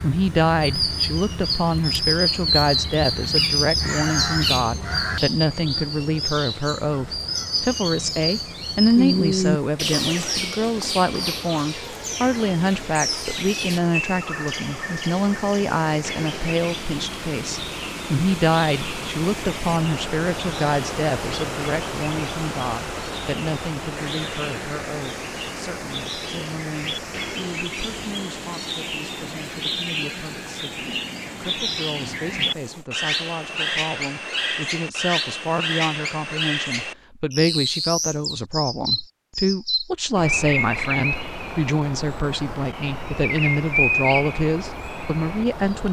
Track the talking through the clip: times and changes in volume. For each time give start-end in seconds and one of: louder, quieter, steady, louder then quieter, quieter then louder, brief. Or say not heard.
0.0-45.8 quieter then louder.